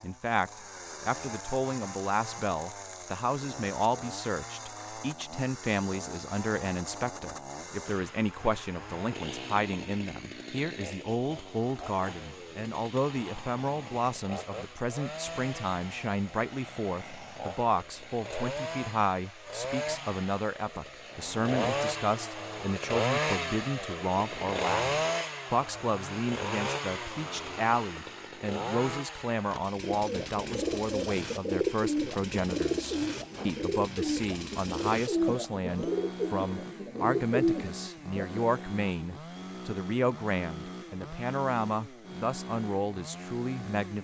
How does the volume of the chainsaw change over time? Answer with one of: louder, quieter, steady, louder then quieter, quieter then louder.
louder then quieter.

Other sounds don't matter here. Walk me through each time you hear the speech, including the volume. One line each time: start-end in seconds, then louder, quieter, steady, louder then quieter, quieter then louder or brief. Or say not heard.
0.0-43.9 steady.